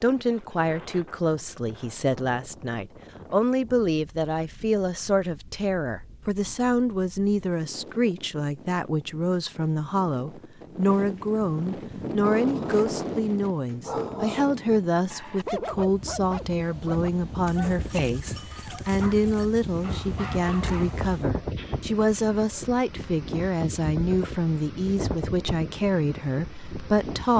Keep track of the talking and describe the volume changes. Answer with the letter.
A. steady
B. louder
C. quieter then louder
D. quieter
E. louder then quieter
A.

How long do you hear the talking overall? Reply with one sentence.
You can hear the talking for 27 seconds altogether.